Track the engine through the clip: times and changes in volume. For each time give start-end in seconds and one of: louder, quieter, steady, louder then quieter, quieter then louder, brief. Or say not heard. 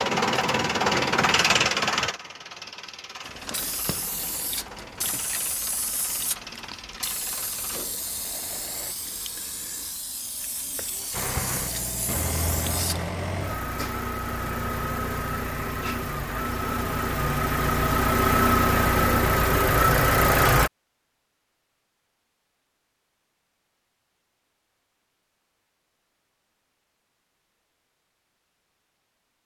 0.0-8.9 quieter
11.1-20.7 louder.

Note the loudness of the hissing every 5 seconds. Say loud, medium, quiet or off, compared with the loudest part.
loud, loud, loud, off, off, off.